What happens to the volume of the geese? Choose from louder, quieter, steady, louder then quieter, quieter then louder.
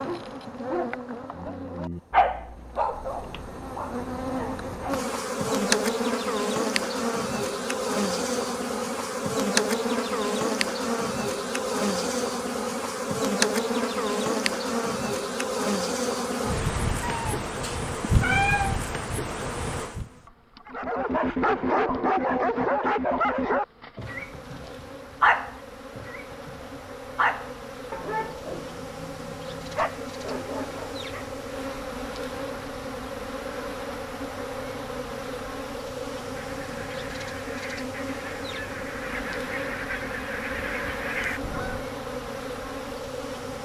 louder.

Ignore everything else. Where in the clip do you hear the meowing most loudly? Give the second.
18 s.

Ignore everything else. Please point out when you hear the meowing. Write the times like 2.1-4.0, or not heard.
17.0-18.8.